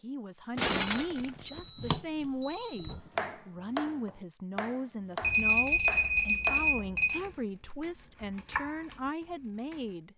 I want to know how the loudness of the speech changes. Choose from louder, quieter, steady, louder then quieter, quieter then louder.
steady.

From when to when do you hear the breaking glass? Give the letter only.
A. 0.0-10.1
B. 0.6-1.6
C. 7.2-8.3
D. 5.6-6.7
B.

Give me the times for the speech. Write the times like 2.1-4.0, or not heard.
0.0-10.1.